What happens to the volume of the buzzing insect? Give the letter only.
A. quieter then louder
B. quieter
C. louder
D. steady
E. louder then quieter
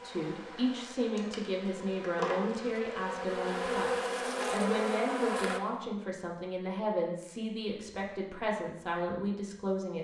C.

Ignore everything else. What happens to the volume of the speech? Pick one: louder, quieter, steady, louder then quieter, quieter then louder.
steady.